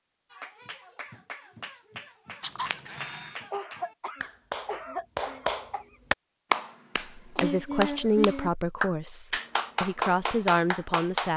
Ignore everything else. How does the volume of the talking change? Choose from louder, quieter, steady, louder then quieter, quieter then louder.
quieter then louder.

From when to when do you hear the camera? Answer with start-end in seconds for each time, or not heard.
2.4-3.5.